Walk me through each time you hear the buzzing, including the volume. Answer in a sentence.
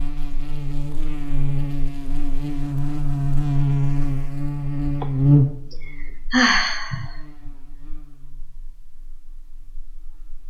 You can hear the buzzing from 0.0 to 10.4 s, getting louder then quieter.